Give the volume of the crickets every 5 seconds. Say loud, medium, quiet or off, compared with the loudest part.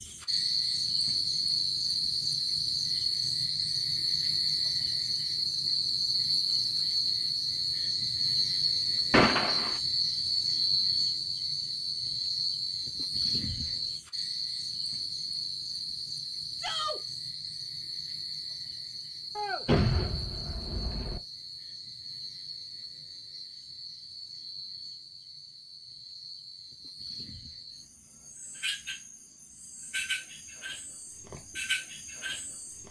loud, loud, loud, medium, quiet, quiet, medium.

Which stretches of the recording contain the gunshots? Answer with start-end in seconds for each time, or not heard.
9.1-9.8, 19.4-21.2.